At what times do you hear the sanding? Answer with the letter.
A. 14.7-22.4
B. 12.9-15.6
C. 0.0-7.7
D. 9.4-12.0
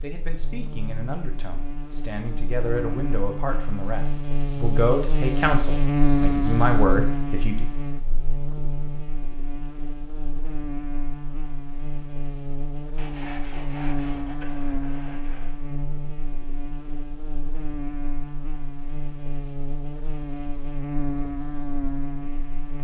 B.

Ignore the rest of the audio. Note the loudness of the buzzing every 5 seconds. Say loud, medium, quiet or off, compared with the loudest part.
medium, loud, medium, medium, medium.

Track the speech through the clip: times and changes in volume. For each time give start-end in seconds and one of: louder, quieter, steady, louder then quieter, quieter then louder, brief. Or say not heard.
0.0-7.7 louder.